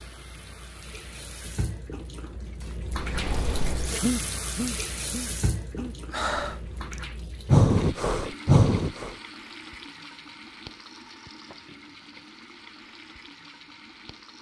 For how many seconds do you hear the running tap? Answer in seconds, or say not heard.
14 s.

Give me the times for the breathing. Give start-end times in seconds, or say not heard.
3.0-9.2.